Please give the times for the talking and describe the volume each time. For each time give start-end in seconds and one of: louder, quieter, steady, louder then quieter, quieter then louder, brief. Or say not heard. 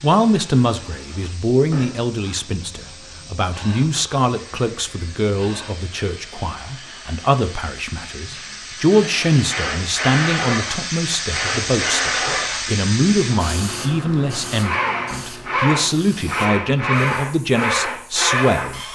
0.0-18.8 steady.